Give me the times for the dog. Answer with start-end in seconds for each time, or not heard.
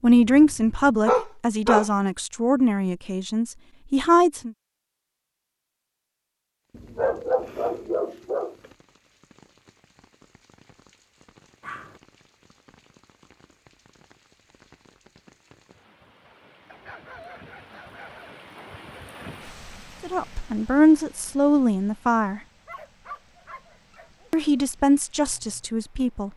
0.1-1.9, 6.8-8.6, 11.6-12.0, 16.6-18.4, 22.6-24.6.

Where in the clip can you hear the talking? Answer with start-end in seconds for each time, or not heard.
0.0-4.5, 20.0-22.4, 24.3-26.3.